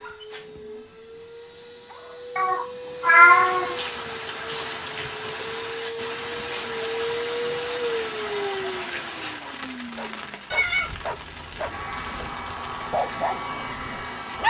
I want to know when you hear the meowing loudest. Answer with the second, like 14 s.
3 s.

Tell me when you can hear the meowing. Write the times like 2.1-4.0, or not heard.
2.4-3.8, 10.5-12.2.